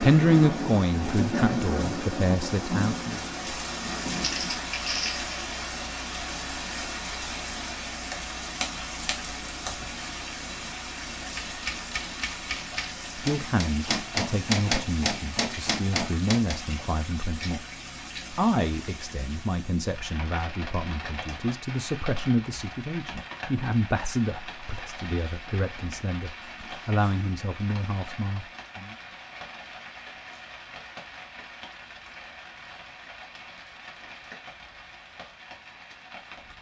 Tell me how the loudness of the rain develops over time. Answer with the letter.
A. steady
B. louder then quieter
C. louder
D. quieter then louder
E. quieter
E.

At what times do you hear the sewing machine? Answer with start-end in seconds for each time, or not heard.
not heard.